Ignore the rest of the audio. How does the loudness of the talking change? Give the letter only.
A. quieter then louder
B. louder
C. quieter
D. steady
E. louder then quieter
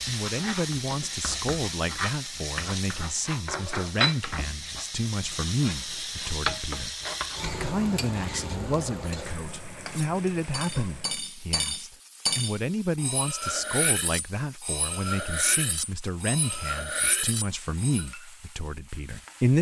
D.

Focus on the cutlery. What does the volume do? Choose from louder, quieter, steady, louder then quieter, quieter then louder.
steady.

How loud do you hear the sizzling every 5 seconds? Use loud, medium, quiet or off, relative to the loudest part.
loud, loud, quiet, quiet.